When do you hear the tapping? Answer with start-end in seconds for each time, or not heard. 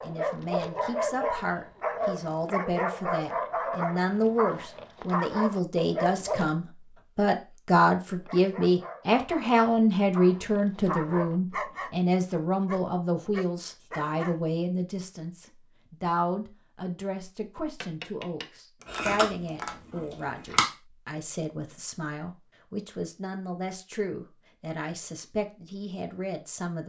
17.6-19.8.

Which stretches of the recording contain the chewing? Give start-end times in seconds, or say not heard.
18.9-20.6.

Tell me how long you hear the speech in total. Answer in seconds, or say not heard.
27 s.